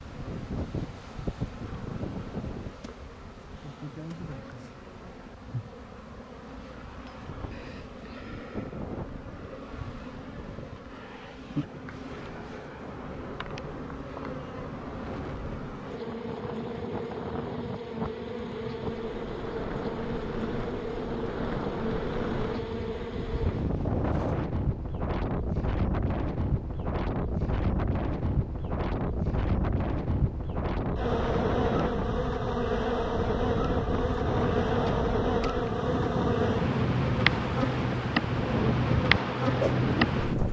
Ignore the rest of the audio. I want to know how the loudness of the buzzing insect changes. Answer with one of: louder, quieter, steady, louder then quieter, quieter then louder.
louder.